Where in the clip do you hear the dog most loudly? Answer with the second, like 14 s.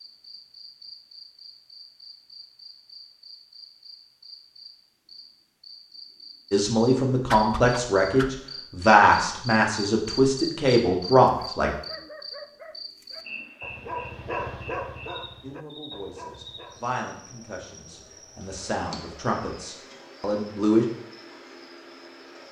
14 s.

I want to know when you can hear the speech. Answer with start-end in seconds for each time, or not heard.
6.5-11.7, 15.4-20.9.